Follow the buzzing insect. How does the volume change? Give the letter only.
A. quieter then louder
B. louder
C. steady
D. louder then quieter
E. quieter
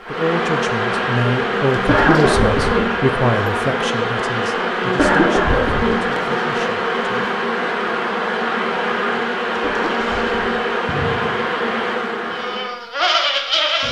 C.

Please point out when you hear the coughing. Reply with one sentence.
The coughing can be heard from 1.9 to 2.9 s, from 5.0 to 6.0 s and from 9.6 to 10.6 s.